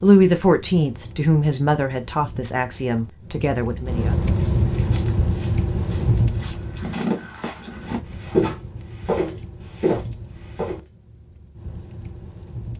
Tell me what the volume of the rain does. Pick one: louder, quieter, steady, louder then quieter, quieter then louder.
louder then quieter.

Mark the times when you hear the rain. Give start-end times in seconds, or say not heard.
0.0-12.7.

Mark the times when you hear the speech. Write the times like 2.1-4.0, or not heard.
0.0-4.2.